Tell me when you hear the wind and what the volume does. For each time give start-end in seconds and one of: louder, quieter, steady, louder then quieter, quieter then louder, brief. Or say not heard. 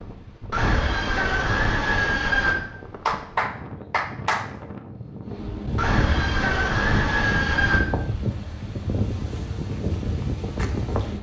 0.0-11.1 louder.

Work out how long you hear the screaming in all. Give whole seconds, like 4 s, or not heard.
4 s.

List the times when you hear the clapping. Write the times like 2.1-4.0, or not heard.
3.0-4.5.